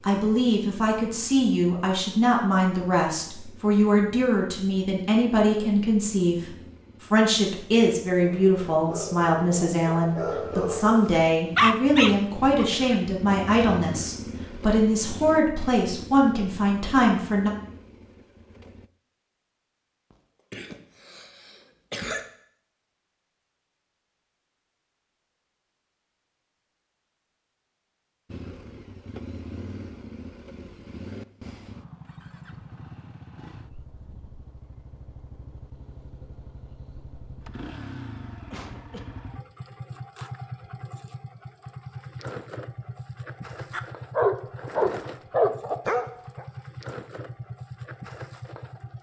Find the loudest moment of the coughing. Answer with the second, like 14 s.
22 s.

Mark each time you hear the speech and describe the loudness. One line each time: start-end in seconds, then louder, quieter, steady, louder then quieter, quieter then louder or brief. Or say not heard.
0.0-17.5 steady.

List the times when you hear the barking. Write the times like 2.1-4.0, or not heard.
8.2-12.7, 43.7-46.5.